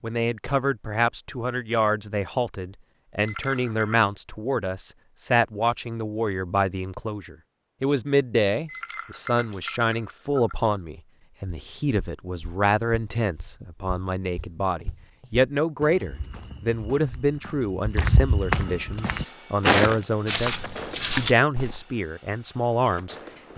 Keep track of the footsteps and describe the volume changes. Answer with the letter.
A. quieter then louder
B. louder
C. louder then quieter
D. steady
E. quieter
B.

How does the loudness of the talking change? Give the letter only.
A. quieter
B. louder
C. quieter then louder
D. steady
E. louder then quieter
D.